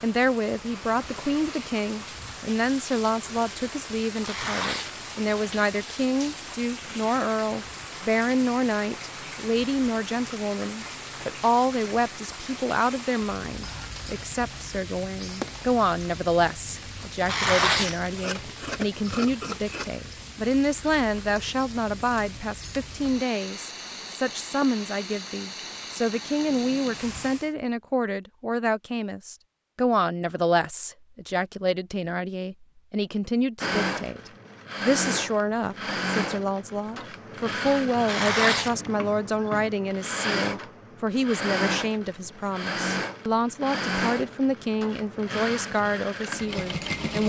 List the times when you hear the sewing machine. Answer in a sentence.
The sewing machine can be heard from 33.6 to 47.2 s.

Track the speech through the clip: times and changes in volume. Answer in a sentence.
You can hear the speech from 0.0 to 47.2 s, at a steady volume.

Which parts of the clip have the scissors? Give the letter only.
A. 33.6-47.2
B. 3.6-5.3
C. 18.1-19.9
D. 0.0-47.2
C.